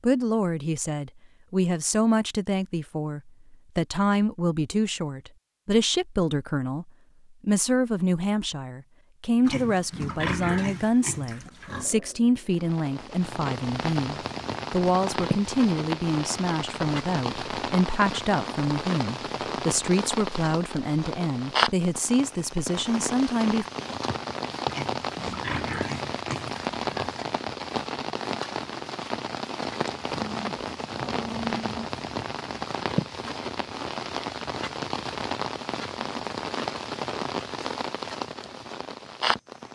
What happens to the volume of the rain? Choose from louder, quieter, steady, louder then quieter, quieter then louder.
steady.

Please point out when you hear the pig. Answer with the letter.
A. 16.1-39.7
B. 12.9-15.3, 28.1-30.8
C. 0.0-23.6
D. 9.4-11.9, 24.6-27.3
D.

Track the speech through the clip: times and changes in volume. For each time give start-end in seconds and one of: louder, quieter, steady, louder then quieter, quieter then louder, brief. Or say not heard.
0.0-23.6 steady.